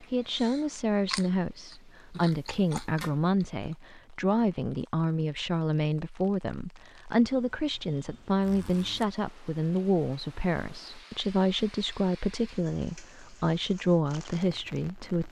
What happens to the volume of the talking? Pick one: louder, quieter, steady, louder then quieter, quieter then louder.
steady.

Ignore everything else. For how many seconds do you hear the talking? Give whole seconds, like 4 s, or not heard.
15 s.